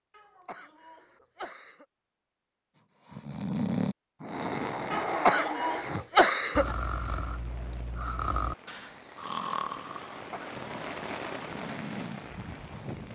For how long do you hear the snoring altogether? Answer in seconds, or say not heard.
10 s.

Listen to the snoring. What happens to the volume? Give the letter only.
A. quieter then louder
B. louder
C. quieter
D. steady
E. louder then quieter
C.